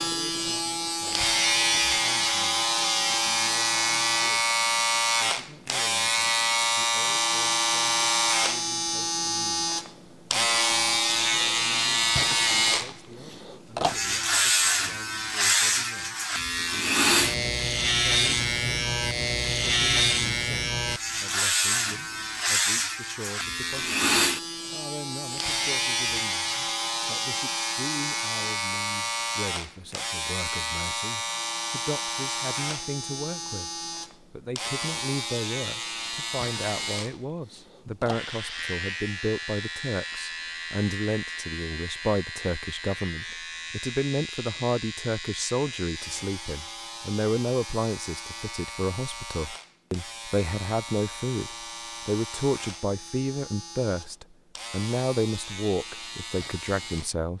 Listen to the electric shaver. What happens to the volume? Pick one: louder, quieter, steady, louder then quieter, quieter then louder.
quieter.